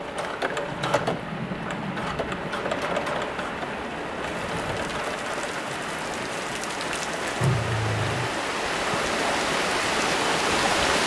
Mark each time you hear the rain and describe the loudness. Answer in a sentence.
The rain can be heard from 0.0 to 11.0 s, getting louder.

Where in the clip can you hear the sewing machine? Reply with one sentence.
You can hear the sewing machine from 0.0 to 5.6 s.